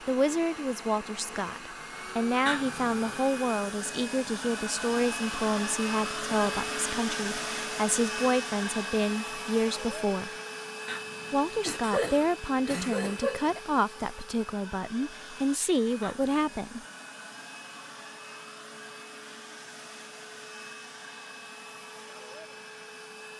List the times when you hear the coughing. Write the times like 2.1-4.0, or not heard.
2.5-3.2, 10.8-13.6, 16.0-16.5.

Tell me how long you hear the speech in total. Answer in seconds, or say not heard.
16 s.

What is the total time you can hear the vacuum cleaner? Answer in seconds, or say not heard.
23 s.